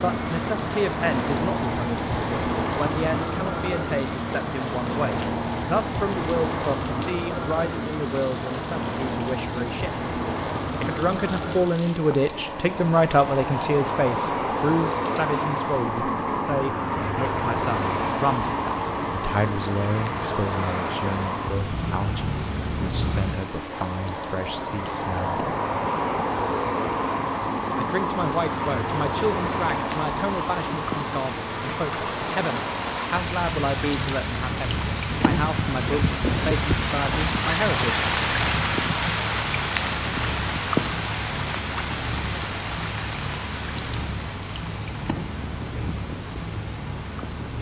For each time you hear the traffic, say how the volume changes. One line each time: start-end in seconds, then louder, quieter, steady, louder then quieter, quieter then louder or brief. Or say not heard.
0.0-47.5 quieter.